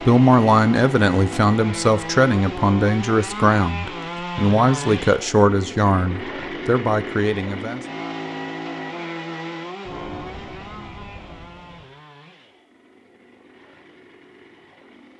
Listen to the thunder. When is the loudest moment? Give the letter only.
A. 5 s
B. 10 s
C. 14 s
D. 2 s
B.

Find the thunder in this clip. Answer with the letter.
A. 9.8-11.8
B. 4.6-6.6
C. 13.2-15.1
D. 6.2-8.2
A.